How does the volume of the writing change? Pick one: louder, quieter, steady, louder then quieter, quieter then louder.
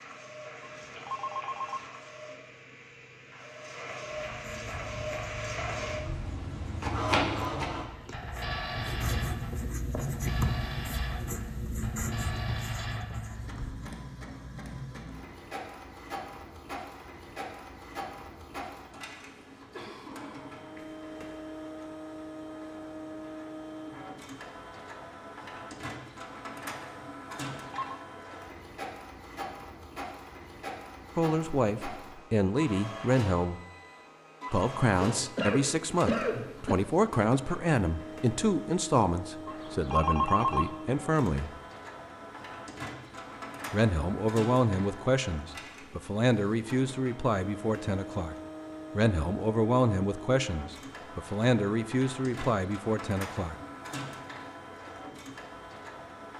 louder.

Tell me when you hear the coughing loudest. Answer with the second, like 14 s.
36 s.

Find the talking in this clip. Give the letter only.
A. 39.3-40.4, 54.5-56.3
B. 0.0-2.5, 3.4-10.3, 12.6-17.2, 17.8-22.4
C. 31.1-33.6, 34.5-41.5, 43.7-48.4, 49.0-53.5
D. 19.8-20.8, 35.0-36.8
C.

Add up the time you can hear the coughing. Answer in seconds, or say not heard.
3 s.